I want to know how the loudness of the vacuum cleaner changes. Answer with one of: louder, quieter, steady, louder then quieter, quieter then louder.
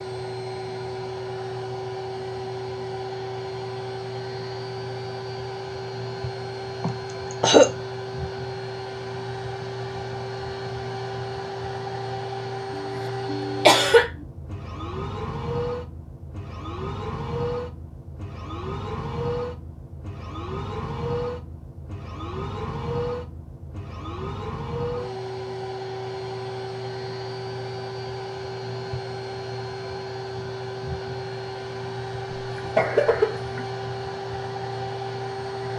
steady.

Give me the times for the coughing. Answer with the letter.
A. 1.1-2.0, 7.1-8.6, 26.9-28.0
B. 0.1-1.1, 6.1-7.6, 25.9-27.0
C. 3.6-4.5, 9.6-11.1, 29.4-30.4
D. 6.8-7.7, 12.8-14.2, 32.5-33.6
D.